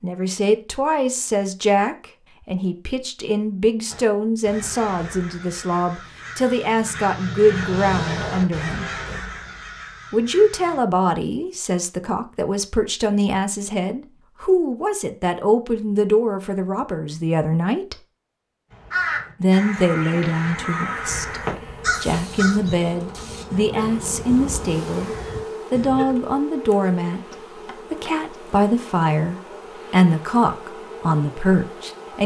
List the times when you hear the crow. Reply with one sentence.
You can hear the crow from 3.9 to 10.8 s and from 18.7 to 26.1 s.